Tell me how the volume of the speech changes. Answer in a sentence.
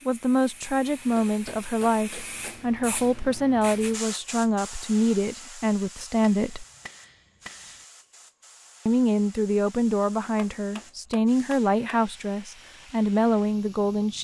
The volume of the speech stays about the same.